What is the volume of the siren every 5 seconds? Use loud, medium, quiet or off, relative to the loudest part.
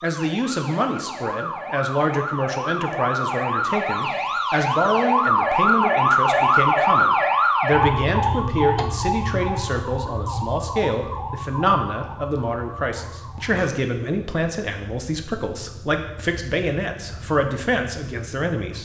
medium, loud, quiet, quiet.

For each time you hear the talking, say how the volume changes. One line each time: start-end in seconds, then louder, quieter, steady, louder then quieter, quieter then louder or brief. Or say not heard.
0.0-18.7 steady.